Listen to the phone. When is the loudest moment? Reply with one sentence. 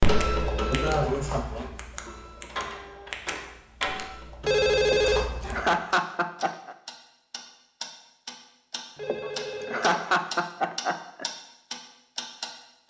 The volume of the phone peaks at 5 seconds.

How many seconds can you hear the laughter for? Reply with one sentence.
You can hear the laughter for 5 seconds altogether.